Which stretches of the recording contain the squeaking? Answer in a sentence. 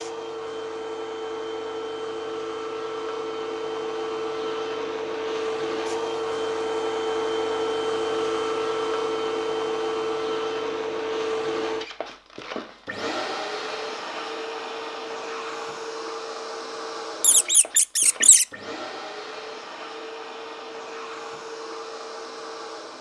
The squeaking can be heard from 17.2 to 18.4 s.